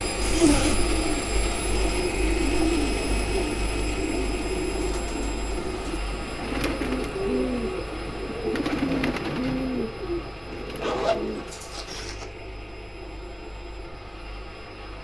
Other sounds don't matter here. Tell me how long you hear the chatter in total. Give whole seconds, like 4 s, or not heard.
not heard.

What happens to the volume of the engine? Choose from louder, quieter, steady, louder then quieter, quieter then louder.
quieter.